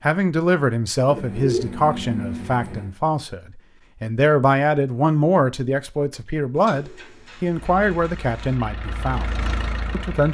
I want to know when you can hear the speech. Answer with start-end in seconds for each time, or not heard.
0.0-10.3.